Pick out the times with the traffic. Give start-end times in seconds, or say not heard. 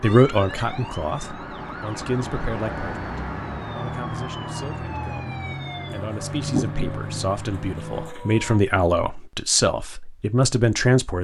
0.0-8.1.